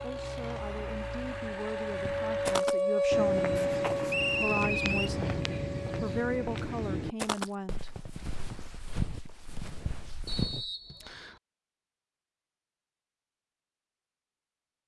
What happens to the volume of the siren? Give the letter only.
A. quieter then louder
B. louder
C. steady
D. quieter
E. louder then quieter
E.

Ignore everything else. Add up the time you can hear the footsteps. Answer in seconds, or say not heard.
9 s.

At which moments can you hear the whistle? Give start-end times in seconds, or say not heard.
4.0-5.1, 10.2-11.3.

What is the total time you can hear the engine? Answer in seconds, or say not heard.
3 s.